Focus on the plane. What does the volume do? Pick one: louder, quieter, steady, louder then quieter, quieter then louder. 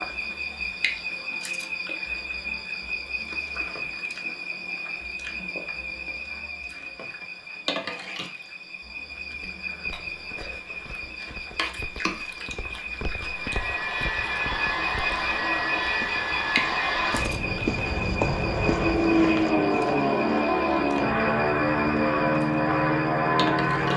louder.